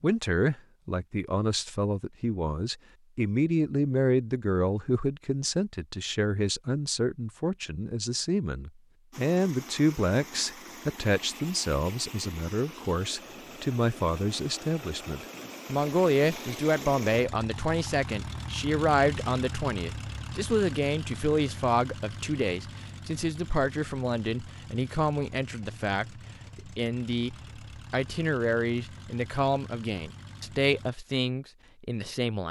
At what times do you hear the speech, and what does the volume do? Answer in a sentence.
The speech can be heard from 0.0 to 32.4 s, at a steady volume.